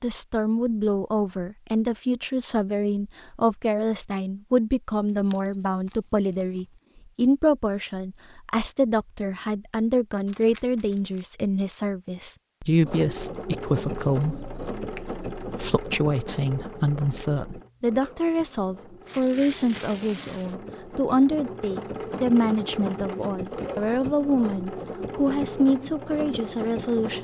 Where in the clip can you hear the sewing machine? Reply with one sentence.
You can hear the sewing machine from 12.8 to 27.2 s.